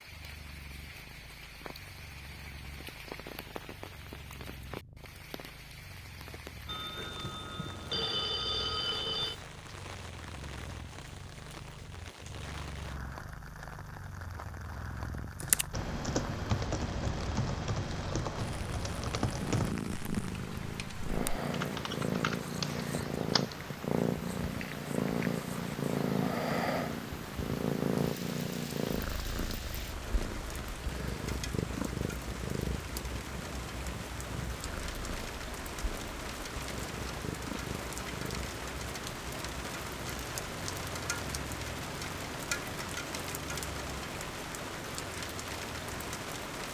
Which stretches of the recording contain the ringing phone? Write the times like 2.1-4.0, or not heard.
6.7-9.4.